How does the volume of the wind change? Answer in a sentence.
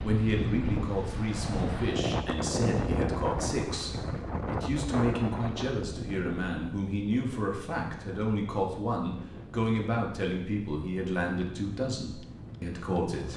The volume of the wind goes down.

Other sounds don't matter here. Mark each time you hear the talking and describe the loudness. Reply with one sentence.
The talking can be heard from 0.0 to 13.3 s, at a steady volume.